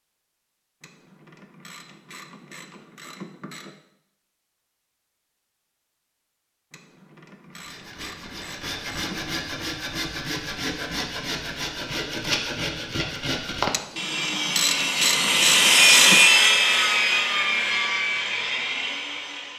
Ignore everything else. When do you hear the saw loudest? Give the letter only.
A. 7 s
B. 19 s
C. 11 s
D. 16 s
D.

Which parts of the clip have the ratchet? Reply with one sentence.
You can hear the ratchet from 0.8 to 3.7 s, from 6.7 to 9.3 s and from 13.7 to 16.2 s.